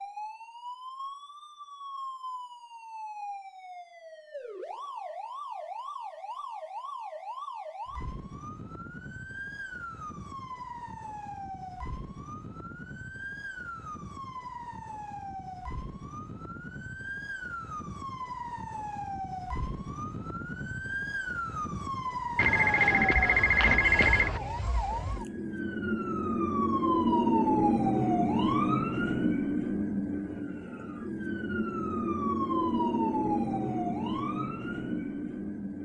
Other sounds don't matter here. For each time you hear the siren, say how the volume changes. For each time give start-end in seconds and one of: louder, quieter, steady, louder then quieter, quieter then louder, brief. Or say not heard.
0.0-35.7 louder.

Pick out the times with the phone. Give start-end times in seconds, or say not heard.
22.4-24.4.